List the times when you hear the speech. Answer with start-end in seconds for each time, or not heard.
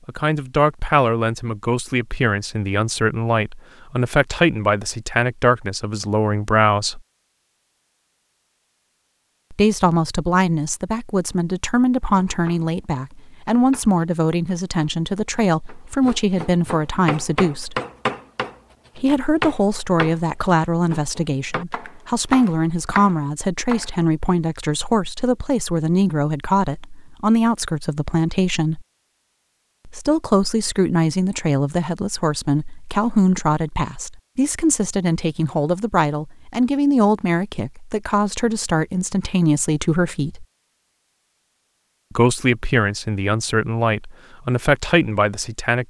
0.1-7.0, 9.5-17.8, 18.9-28.9, 29.9-40.5, 42.1-45.8.